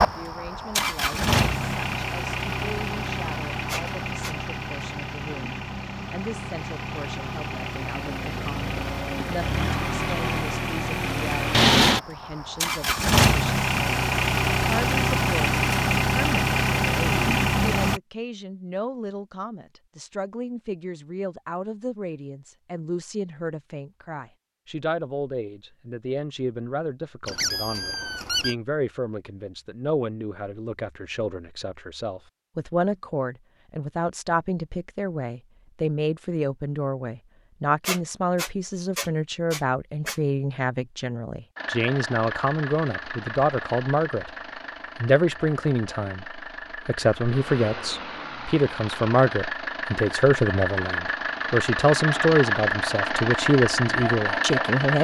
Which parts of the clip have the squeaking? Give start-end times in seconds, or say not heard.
3.7-4.3, 27.2-28.6, 37.9-40.1.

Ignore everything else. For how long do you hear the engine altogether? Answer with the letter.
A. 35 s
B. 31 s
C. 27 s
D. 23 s
B.